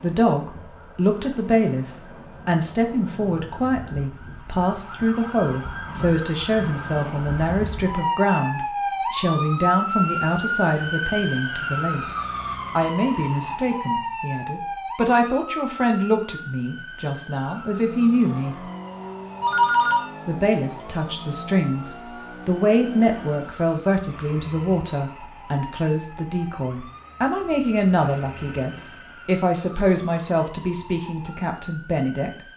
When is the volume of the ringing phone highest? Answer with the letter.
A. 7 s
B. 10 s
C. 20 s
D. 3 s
C.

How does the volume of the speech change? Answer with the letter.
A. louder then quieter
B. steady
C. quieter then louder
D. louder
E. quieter
B.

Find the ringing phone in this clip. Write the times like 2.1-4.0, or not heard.
5.0-7.0, 19.4-20.1.